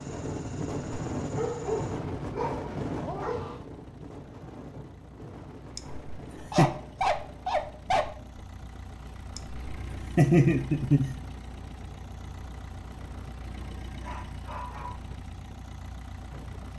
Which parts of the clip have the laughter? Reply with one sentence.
You can hear the laughter from 5.8 to 6.7 s and from 9.3 to 11.2 s.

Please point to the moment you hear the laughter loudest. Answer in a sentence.
The loudest moment of the laughter is at 10 seconds.